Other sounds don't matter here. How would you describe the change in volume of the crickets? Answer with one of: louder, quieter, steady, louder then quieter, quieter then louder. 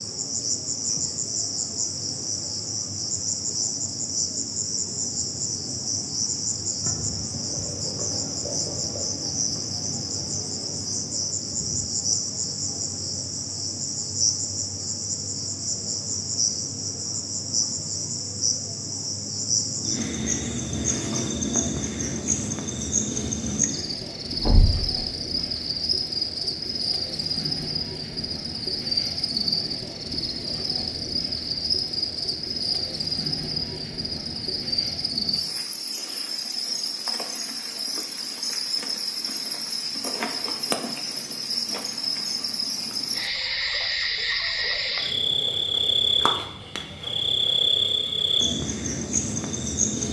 steady.